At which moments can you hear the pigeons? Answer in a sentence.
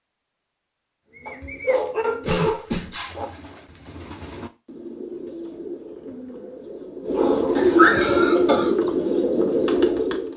The pigeons can be heard from 1.1 to 10.3 s.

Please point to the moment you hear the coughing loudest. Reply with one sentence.
The loudest moment of the coughing is at 8 seconds.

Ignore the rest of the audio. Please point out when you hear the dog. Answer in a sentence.
You can hear the dog from 1.2 to 3.2 s and from 7.2 to 8.5 s.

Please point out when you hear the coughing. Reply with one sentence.
You can hear the coughing from 2.2 to 3.0 s and from 7.5 to 8.7 s.